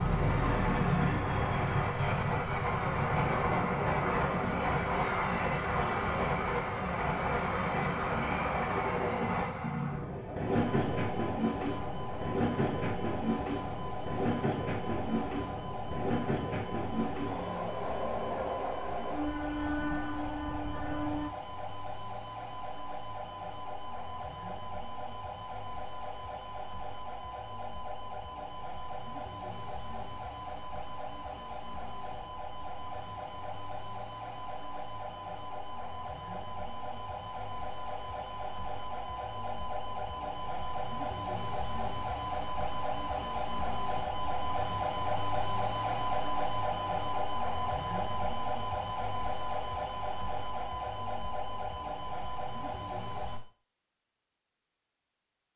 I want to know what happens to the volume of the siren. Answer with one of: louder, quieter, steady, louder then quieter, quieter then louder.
louder.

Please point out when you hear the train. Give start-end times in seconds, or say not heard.
0.0-21.3.